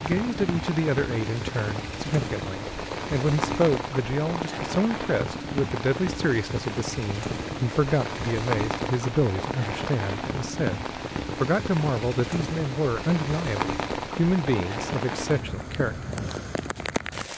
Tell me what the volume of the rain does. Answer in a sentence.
The loudness of the rain stays about the same.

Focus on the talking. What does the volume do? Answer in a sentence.
The volume of the talking stays about the same.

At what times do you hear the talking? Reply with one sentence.
The talking can be heard from 0.0 to 16.0 s.